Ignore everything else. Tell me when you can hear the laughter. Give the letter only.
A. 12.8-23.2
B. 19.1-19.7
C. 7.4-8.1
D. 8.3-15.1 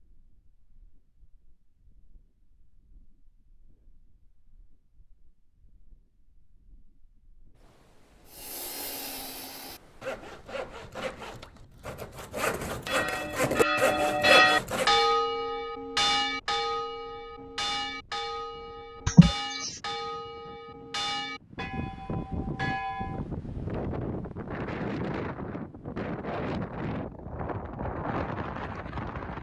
B.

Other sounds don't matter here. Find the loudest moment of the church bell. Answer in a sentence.
The loudest moment of the church bell is at 14 seconds.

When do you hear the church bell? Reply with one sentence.
You can hear the church bell from 12.8 to 23.2 s.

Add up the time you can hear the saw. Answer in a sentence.
You can hear the saw for 7 seconds altogether.